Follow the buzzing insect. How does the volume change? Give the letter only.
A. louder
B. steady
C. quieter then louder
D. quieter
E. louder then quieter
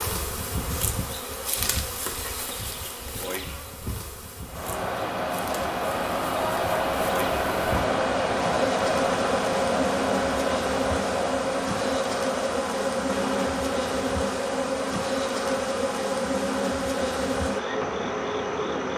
C.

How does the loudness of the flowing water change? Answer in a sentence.
The loudness of the flowing water goes down.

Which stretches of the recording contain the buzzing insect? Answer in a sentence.
The buzzing insect can be heard from 0.0 to 18.9 s.